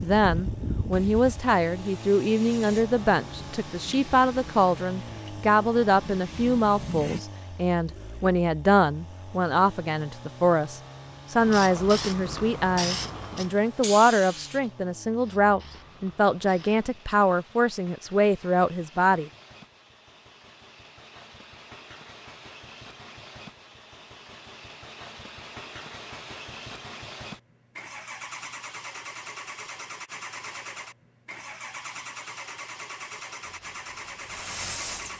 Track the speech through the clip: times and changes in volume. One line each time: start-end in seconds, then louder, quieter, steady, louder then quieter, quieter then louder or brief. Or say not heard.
0.0-19.3 steady.